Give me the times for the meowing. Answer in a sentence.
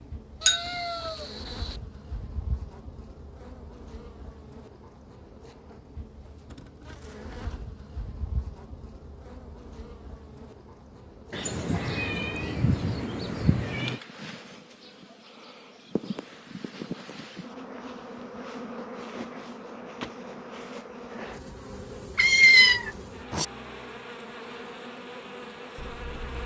The meowing can be heard from 0.4 to 1.7 s, from 11.3 to 14.0 s and from 22.1 to 23.4 s.